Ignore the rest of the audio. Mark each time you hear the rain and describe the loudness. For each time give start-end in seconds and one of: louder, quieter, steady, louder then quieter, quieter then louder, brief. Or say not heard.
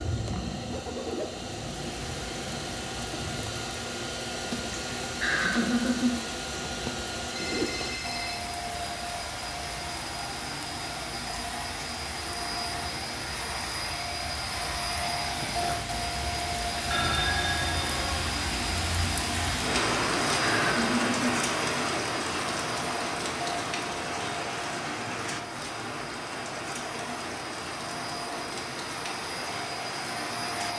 0.0-30.7 louder then quieter.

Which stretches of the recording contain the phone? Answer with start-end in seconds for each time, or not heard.
7.3-8.5, 16.9-18.2.